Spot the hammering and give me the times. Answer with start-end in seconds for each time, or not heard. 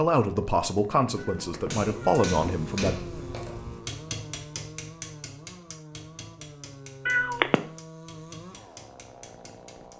1.1-9.9.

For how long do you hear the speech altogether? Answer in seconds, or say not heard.
3 s.